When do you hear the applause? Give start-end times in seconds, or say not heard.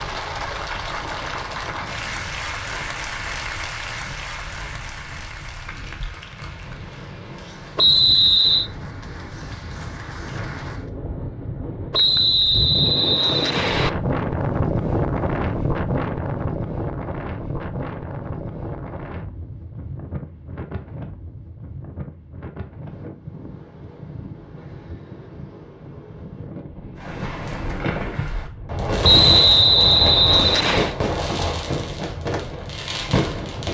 0.0-10.9.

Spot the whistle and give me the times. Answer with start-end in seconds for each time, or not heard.
7.8-8.7, 11.9-13.9, 29.0-30.9.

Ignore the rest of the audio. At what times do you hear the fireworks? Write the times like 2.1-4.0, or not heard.
26.9-33.7.